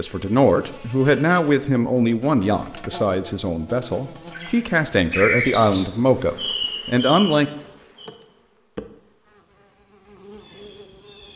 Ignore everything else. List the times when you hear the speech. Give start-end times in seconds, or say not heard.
0.0-7.5.